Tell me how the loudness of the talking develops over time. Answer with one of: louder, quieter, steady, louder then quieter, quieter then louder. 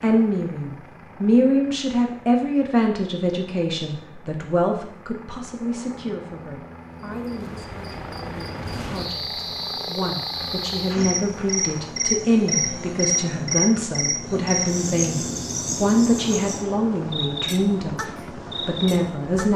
quieter then louder.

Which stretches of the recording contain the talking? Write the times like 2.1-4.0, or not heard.
0.0-19.5.